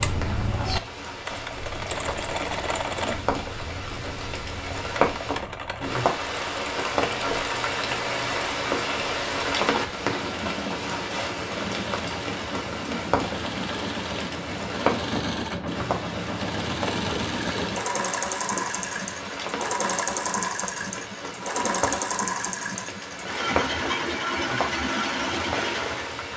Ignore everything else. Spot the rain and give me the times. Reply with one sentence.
You can hear the rain from 0.0 to 26.3 s.